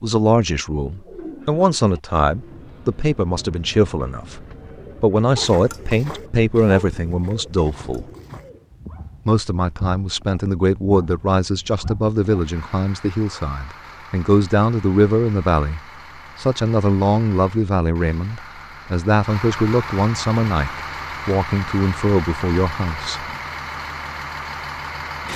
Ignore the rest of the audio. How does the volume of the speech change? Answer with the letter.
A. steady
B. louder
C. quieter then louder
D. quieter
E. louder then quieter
A.